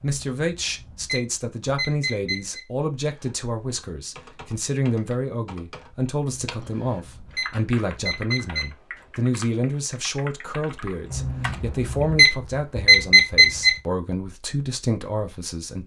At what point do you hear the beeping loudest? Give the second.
13 s.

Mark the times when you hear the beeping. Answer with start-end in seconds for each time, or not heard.
0.0-2.6, 6.3-8.7, 11.1-13.8.